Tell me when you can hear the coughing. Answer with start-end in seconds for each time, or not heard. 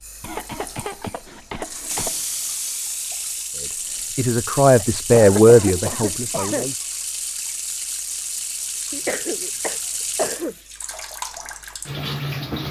0.2-2.1, 4.8-6.8, 8.9-10.6.